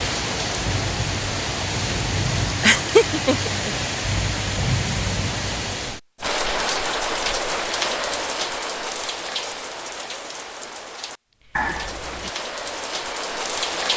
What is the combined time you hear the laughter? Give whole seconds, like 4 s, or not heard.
2 s.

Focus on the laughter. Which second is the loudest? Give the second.
3 s.